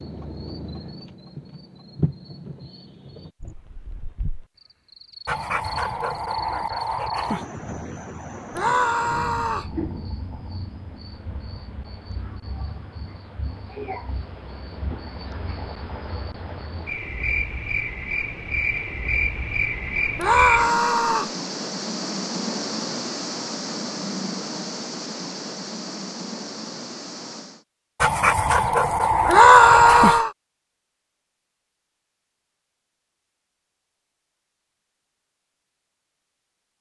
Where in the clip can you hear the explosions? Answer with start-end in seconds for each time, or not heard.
not heard.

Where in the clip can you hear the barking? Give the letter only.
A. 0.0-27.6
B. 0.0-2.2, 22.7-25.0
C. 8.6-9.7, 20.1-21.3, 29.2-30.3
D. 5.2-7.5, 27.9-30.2
D.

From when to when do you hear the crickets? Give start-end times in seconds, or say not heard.
0.0-27.6.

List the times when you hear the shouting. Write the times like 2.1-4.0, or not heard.
8.6-9.7, 20.1-21.3, 29.2-30.3.